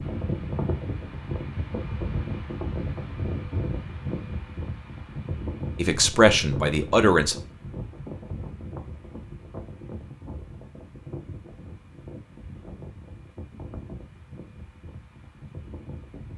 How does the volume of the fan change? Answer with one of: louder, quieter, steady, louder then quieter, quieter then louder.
quieter.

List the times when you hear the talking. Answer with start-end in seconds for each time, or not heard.
5.8-7.4.